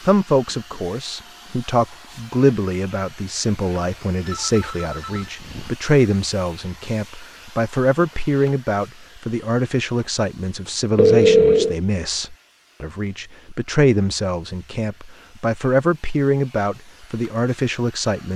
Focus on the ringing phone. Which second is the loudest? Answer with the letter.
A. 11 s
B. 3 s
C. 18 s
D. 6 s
A.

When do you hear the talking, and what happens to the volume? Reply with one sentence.
The talking can be heard from 0.1 to 18.3 s, at a steady volume.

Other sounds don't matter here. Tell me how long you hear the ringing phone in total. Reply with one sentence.
You can hear the ringing phone for 3 seconds altogether.